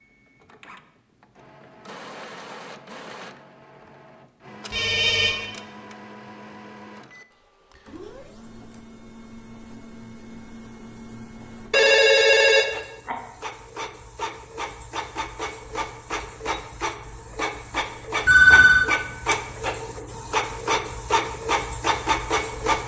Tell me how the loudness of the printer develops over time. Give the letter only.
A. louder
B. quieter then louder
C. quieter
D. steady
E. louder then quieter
A.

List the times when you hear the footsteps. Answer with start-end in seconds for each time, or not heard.
not heard.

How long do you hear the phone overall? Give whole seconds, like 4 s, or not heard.
3 s.